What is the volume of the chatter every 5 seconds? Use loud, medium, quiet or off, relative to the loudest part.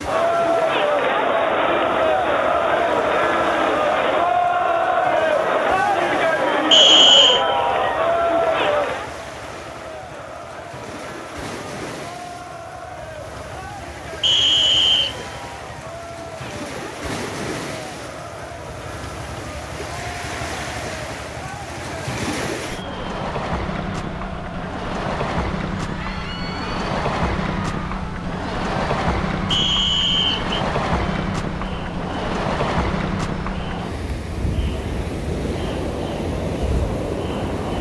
loud, loud, quiet, quiet, quiet, quiet, quiet, quiet.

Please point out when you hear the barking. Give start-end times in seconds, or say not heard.
not heard.